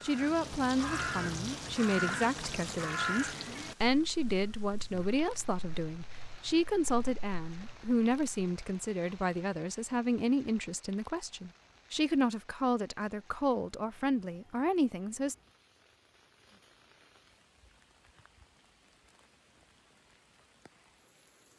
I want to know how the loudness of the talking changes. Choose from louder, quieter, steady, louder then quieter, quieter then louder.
steady.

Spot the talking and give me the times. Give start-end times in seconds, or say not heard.
0.0-15.3.